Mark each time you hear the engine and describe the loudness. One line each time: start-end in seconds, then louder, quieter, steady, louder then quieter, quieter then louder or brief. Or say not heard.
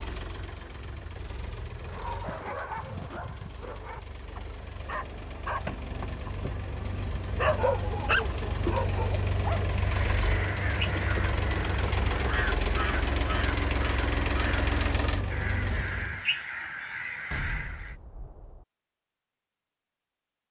0.0-16.2 louder.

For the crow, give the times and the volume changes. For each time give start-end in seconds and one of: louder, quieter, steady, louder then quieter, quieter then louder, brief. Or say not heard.
9.8-17.9 steady.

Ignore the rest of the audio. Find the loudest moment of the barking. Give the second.
8 s.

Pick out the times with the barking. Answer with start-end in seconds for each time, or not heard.
1.8-9.6.